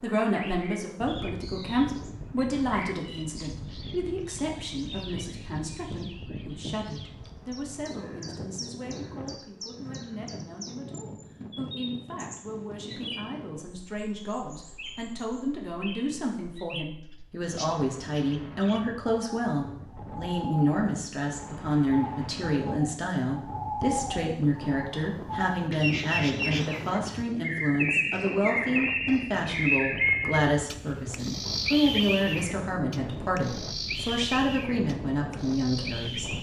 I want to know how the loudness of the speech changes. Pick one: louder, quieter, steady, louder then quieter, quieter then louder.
quieter then louder.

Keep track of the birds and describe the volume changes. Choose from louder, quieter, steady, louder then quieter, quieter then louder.
louder.